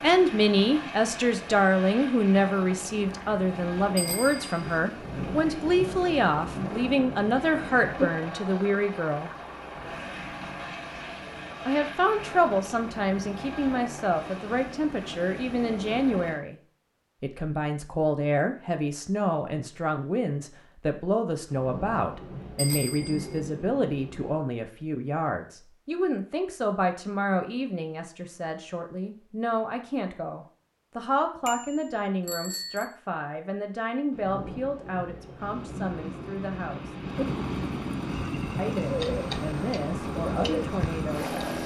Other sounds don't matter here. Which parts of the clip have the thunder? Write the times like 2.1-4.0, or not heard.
5.0-8.1, 21.4-24.4, 34.1-37.2.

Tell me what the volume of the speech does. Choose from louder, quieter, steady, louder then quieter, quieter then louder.
quieter.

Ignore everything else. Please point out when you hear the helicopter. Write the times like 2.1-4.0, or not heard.
0.0-16.4, 35.4-41.6.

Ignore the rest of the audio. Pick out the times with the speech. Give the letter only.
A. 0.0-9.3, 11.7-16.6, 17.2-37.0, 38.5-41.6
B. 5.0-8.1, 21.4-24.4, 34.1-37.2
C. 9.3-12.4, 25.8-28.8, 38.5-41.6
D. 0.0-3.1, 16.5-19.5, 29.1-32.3
A.